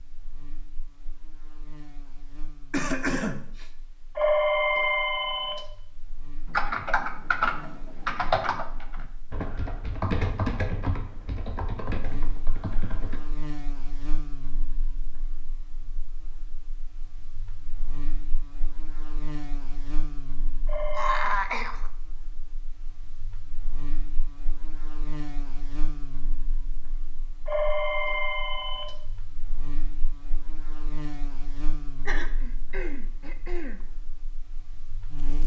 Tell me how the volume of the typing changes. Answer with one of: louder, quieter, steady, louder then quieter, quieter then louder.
quieter.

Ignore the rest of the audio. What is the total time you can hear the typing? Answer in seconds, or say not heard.
7 s.